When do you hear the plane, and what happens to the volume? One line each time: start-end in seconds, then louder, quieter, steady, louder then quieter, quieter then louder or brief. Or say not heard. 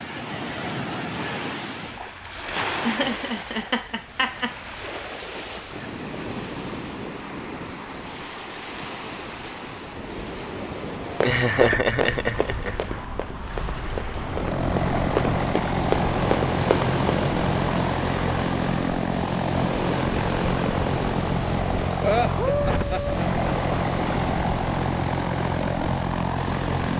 14.1-26.9 steady.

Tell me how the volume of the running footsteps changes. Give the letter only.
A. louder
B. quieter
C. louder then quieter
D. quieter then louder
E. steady
D.